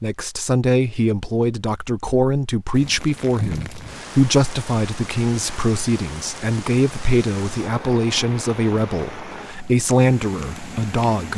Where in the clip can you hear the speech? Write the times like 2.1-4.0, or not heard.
0.0-11.3.